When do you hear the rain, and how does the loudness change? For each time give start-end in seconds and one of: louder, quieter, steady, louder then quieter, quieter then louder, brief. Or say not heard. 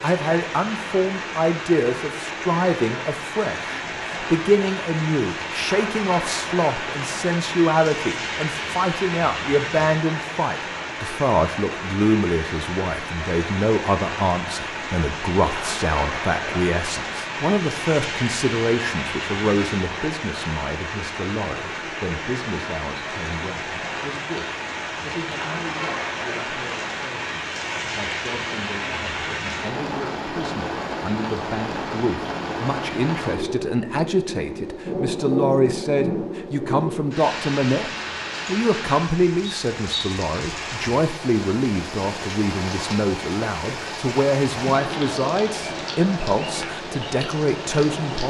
0.0-48.2 steady.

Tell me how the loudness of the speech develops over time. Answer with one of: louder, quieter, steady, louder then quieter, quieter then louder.
quieter then louder.